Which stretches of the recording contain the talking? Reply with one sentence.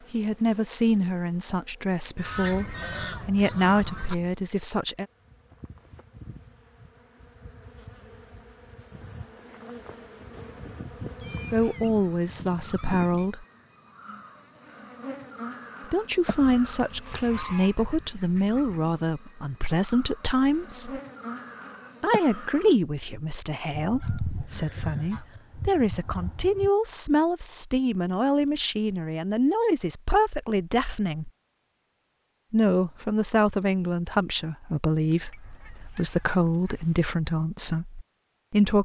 You can hear the talking from 0.1 to 5.0 s, from 11.5 to 13.4 s, from 15.9 to 21.0 s, from 22.0 to 31.3 s and from 32.5 to 38.8 s.